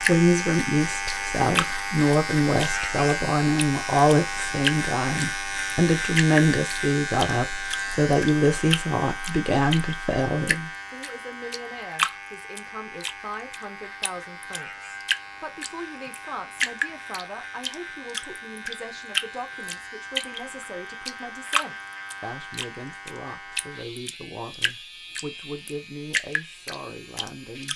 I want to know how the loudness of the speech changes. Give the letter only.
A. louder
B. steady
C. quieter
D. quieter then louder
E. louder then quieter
C.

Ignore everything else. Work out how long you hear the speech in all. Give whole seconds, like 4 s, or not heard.
28 s.